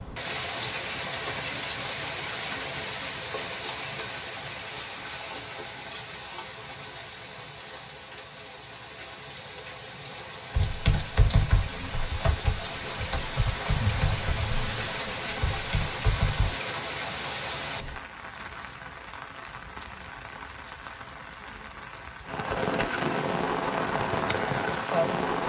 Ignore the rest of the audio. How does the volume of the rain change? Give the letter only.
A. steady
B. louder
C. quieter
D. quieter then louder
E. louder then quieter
D.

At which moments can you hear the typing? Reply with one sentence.
The typing can be heard from 10.5 to 16.6 s.